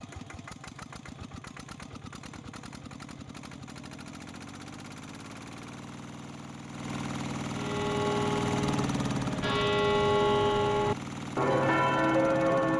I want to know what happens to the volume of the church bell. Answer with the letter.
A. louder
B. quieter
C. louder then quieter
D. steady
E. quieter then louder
A.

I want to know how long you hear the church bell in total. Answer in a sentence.
The church bell can be heard for 5 seconds in total.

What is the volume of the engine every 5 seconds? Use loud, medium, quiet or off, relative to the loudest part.
medium, loud, loud.